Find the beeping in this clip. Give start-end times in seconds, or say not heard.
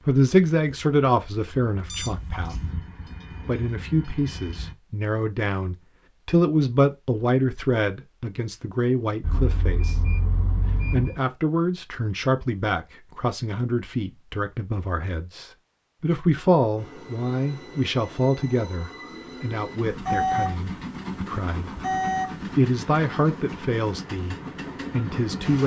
1.9-2.6, 9.2-11.2, 19.9-22.6.